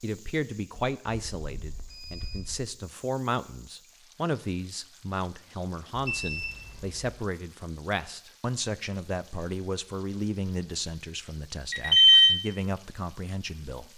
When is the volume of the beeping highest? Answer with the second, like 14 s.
12 s.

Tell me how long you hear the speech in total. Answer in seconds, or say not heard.
14 s.